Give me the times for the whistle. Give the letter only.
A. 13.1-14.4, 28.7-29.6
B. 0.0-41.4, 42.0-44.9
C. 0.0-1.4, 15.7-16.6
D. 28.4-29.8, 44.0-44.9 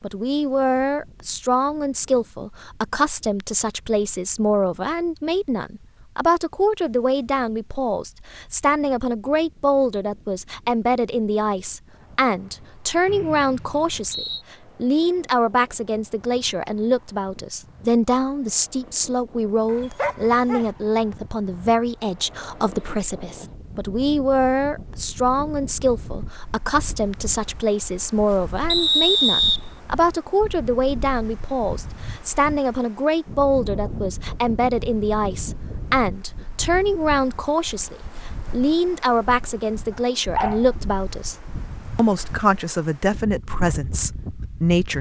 A.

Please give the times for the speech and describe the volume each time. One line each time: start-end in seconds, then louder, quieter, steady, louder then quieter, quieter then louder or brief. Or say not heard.
0.0-41.4 steady
42.0-44.9 brief.